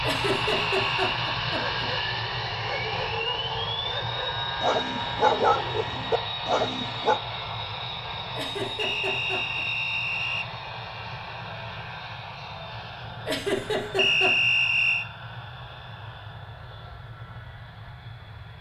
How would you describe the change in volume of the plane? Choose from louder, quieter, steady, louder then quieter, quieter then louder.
quieter.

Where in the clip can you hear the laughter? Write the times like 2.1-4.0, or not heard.
0.0-1.9, 8.3-9.7, 13.2-14.3.